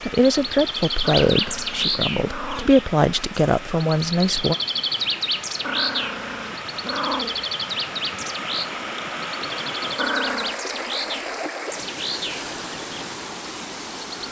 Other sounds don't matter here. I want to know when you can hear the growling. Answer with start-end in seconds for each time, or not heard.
1.0-2.8, 5.6-7.5, 9.9-10.6.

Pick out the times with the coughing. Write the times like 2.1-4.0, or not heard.
not heard.